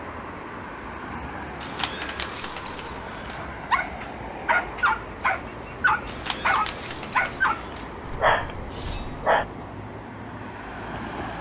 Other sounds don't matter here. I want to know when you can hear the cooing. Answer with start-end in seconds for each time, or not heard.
not heard.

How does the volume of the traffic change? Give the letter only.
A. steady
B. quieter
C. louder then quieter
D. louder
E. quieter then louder
A.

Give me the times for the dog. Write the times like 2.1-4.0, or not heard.
3.4-9.4.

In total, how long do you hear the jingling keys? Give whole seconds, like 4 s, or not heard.
4 s.